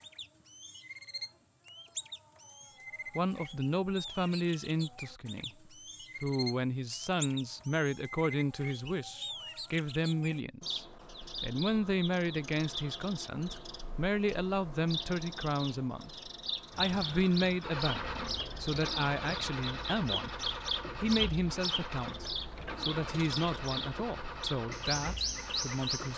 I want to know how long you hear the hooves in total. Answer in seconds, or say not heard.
not heard.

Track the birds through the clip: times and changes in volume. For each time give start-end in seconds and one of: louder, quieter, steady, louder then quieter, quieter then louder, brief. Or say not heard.
0.0-26.1 louder.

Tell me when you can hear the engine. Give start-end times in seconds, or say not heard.
16.7-26.1.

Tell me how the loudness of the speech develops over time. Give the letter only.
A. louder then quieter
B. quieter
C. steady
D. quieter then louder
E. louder
C.